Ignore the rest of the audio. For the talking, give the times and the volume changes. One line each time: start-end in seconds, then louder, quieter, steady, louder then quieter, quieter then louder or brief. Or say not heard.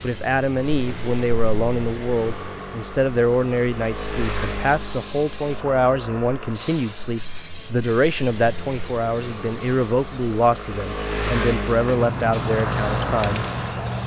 0.0-13.4 steady.